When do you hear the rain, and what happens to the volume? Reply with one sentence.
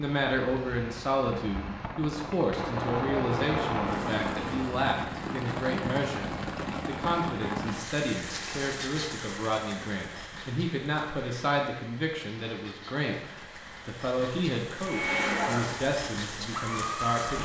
The rain can be heard from 0.0 to 17.3 s, getting quieter then louder.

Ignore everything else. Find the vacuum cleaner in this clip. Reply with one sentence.
The vacuum cleaner can be heard from 14.8 to 17.3 s.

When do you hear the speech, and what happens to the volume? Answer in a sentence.
The speech can be heard from 0.0 to 17.3 s, at a steady volume.